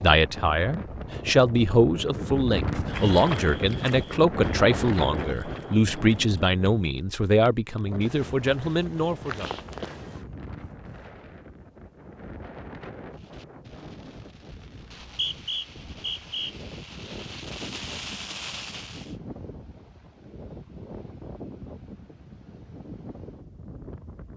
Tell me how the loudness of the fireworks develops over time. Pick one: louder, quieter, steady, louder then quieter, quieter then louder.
louder.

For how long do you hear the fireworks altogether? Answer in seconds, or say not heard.
6 s.